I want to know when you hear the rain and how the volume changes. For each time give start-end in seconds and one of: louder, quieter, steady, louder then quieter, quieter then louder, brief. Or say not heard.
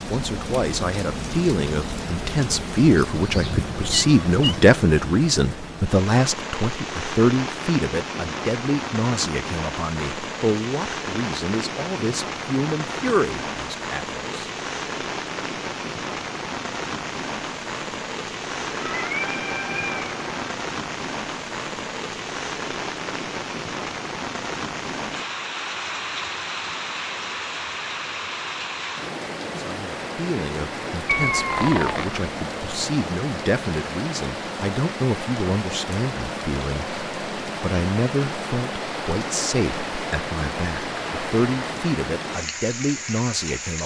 0.0-43.8 steady.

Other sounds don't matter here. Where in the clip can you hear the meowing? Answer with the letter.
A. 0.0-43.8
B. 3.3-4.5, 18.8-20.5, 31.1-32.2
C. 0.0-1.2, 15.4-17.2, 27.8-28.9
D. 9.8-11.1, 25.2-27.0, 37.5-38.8
B.